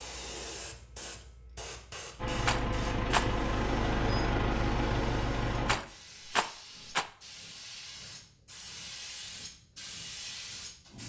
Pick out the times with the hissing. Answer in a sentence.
You can hear the hissing from 0.0 to 11.0 s.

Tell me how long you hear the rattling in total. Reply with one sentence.
You can hear the rattling for 2 seconds altogether.